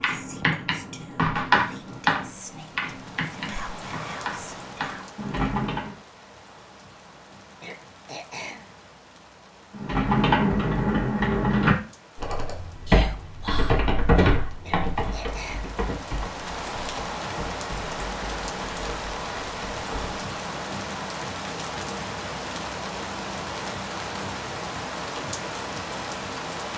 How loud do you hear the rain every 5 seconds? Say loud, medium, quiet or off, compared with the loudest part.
medium, quiet, quiet, loud, loud, loud.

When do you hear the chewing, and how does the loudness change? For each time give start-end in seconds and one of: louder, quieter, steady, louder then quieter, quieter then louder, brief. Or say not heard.
not heard.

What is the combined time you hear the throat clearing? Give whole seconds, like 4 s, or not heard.
2 s.